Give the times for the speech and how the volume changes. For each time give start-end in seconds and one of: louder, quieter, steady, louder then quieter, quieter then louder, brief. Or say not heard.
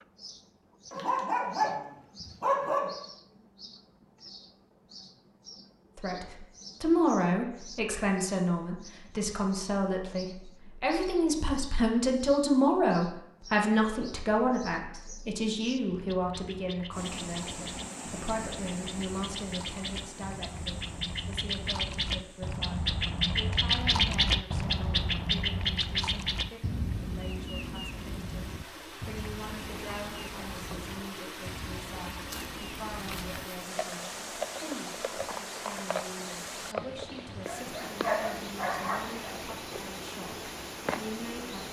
6.0-41.6 quieter.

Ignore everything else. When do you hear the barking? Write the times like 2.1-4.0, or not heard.
0.9-2.9, 37.2-39.0.